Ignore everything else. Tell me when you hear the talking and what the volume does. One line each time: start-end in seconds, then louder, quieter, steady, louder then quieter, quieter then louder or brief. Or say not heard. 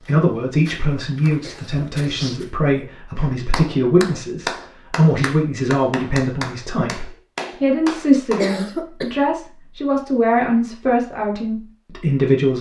0.1-12.5 steady.